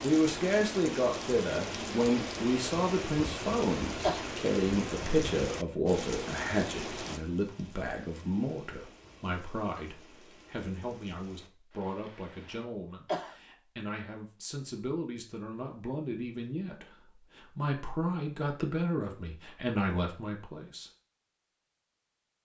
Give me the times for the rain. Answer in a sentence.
The rain can be heard from 0.0 to 12.7 s.